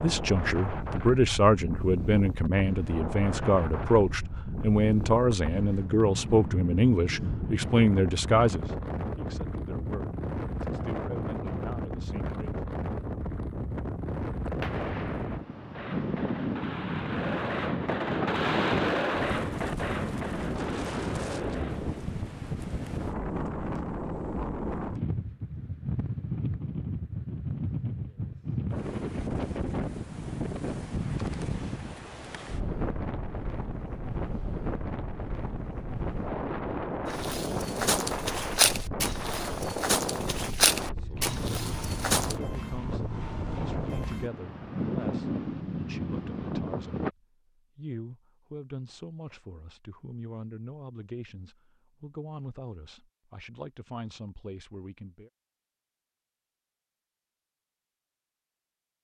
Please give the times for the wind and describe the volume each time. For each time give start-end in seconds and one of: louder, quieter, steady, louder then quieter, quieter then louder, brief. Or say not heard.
0.0-47.1 steady.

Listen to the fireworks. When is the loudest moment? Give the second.
19 s.